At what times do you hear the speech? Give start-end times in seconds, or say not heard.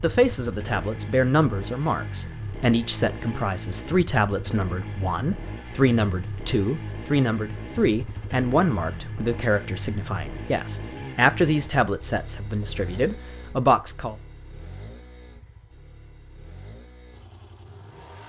0.0-14.2.